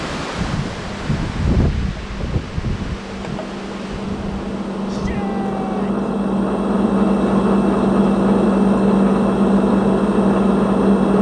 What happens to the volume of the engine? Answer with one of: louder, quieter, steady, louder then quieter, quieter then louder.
louder.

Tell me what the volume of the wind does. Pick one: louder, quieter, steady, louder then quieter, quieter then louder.
quieter.